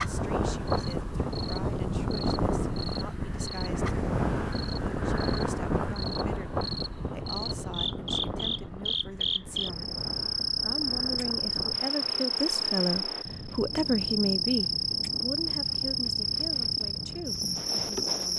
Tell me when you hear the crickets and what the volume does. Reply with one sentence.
The crickets can be heard from 0.0 to 18.3 s, getting louder.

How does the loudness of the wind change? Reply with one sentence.
The volume of the wind goes down.